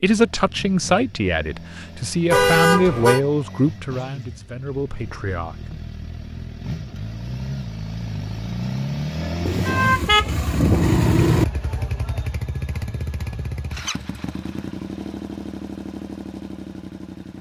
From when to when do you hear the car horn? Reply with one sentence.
The car horn can be heard from 2.3 to 3.2 s and from 9.4 to 11.4 s.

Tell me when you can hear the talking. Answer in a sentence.
The talking can be heard from 0.0 to 5.8 s.